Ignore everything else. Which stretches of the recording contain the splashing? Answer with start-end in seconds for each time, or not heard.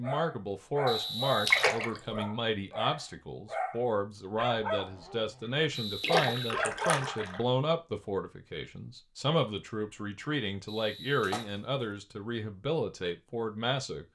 1.4-2.0, 6.0-7.4, 11.2-11.9.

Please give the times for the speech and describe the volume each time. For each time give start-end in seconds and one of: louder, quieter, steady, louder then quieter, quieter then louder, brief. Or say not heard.
0.0-14.0 steady.